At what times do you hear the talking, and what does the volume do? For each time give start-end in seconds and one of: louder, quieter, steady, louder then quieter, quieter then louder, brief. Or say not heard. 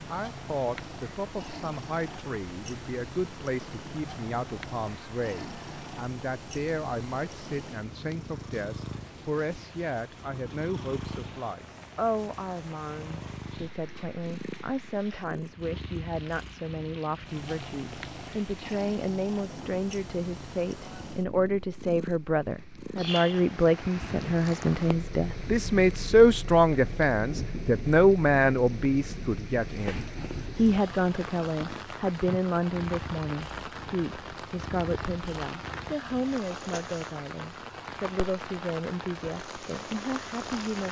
0.1-40.8 louder then quieter.